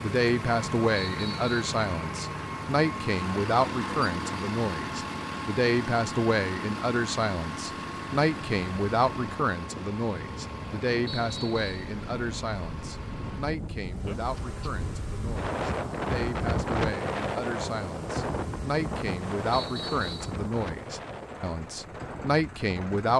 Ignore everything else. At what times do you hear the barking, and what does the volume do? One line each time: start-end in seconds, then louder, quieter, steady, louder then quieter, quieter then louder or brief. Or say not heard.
not heard.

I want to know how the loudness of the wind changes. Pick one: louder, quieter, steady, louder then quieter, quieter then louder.
louder then quieter.